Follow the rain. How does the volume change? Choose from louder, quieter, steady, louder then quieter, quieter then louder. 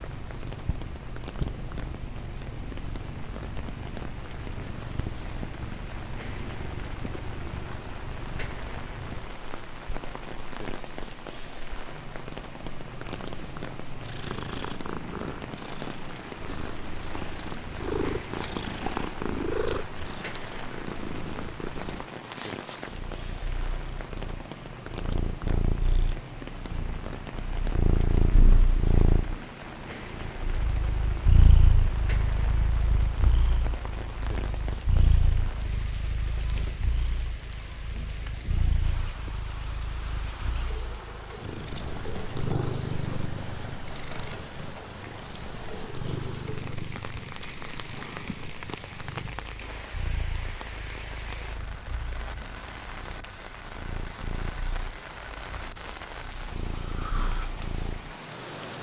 steady.